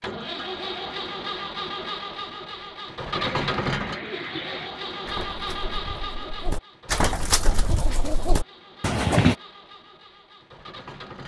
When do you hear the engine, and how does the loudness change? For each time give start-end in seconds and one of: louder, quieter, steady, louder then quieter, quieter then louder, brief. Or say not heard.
0.0-11.2 quieter.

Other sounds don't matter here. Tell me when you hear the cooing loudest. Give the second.
9 s.